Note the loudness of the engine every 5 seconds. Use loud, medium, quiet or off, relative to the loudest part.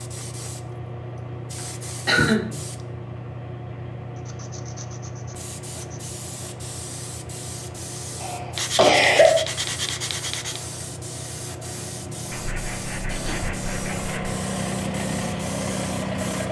quiet, quiet, medium, loud.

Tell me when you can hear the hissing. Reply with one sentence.
You can hear the hissing from 0.0 to 16.4 s.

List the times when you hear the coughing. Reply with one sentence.
You can hear the coughing from 2.0 to 2.5 s, from 8.2 to 9.4 s and from 13.1 to 13.5 s.